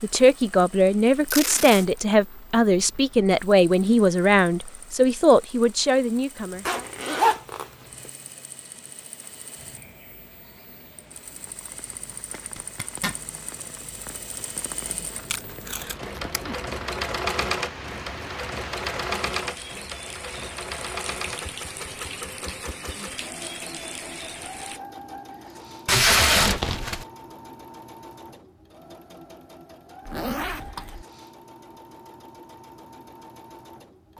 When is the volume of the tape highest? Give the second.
26 s.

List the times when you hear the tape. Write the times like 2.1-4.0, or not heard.
1.3-1.9, 15.3-16.4, 25.9-27.1.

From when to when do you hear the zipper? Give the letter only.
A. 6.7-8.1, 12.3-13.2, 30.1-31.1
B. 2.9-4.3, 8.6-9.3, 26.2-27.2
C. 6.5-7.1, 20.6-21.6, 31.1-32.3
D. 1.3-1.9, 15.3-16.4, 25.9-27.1
A.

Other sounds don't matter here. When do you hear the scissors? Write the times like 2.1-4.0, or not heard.
not heard.